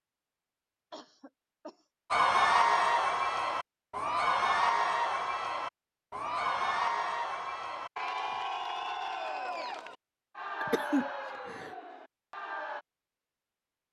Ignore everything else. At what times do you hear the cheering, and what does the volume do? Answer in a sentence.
The cheering can be heard from 2.1 to 12.8 s, getting quieter.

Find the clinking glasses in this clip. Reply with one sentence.
The clinking glasses can't be heard in this clip.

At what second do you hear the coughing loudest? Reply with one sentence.
The loudest moment of the coughing is at 11 seconds.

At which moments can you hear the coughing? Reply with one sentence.
You can hear the coughing from 0.9 to 1.9 s and from 10.6 to 11.7 s.